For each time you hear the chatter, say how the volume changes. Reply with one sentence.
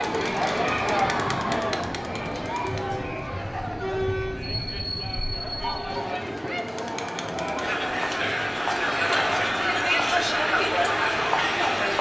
You can hear the chatter from 0.0 to 11.9 s, getting quieter then louder.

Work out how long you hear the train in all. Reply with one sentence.
You can hear the train for 12 seconds altogether.